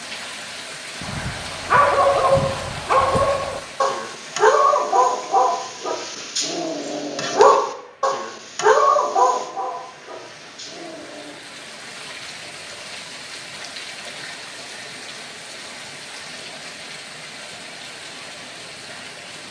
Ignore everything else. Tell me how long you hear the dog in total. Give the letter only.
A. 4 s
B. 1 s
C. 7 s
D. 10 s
D.